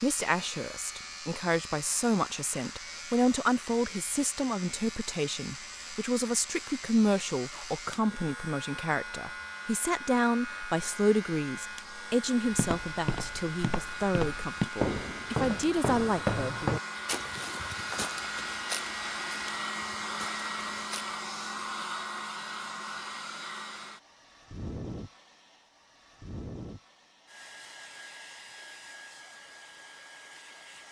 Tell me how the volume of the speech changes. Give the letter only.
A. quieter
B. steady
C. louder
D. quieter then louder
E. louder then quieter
B.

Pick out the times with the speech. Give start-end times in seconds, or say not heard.
0.0-16.8.